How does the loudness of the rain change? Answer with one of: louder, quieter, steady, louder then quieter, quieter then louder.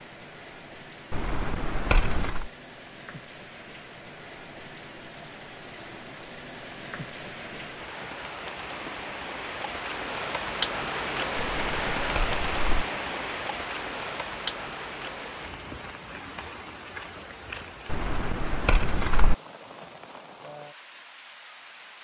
louder then quieter.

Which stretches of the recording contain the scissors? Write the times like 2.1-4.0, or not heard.
1.1-2.5, 11.3-12.8, 17.9-19.4.